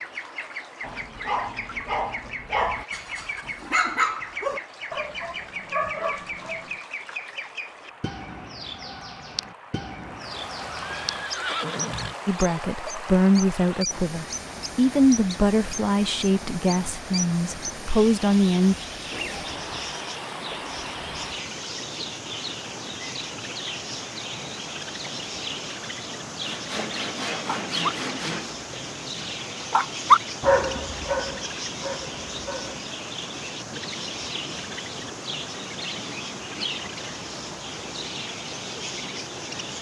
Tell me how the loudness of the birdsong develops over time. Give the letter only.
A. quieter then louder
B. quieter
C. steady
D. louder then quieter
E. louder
C.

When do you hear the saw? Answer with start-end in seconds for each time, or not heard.
26.4-28.6.